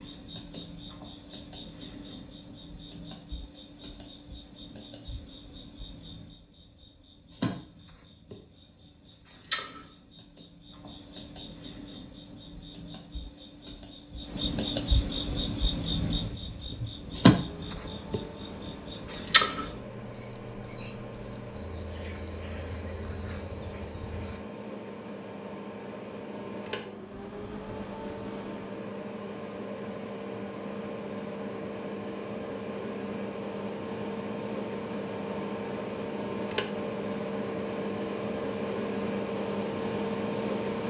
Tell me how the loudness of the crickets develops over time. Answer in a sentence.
The loudness of the crickets goes up.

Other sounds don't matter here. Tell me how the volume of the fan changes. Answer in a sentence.
The volume of the fan goes up.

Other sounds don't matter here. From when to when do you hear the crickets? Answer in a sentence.
You can hear the crickets from 0.0 to 24.4 s.